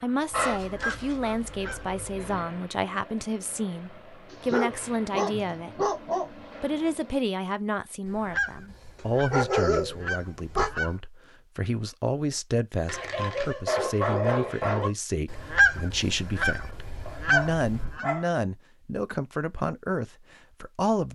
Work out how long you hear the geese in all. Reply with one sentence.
You can hear the geese for 7 seconds altogether.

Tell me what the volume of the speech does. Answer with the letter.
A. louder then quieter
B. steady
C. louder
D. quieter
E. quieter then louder
B.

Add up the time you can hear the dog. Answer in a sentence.
The dog can be heard for 9 seconds in total.